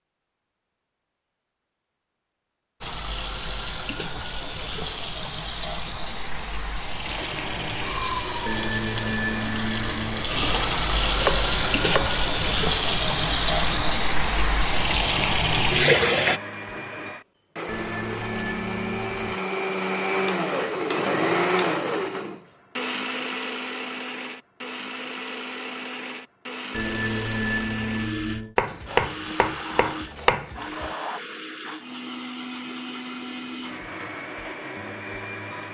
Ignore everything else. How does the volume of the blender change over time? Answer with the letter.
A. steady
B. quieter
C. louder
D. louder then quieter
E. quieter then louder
D.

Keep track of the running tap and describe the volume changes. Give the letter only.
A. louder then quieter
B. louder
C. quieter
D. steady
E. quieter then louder
B.